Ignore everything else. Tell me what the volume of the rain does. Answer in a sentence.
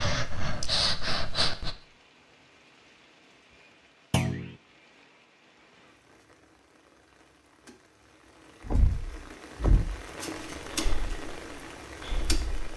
The volume of the rain goes up.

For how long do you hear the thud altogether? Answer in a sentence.
The thud can be heard for 2 seconds in total.